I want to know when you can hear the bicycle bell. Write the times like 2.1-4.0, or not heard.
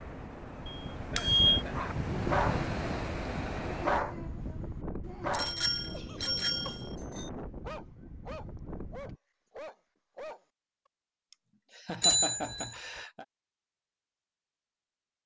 0.7-1.6, 5.3-7.2, 12.0-12.8.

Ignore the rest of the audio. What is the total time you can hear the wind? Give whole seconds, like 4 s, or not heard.
9 s.